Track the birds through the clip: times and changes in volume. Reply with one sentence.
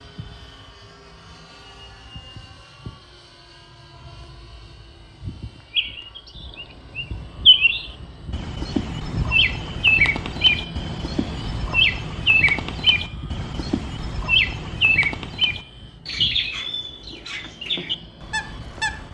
The birds can be heard from 5.8 to 19.0 s, getting quieter.